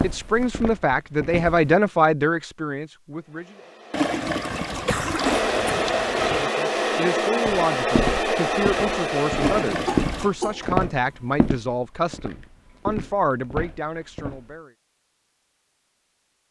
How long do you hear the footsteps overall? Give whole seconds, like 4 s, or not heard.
9 s.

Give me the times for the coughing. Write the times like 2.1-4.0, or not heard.
4.7-5.8, 9.7-10.9.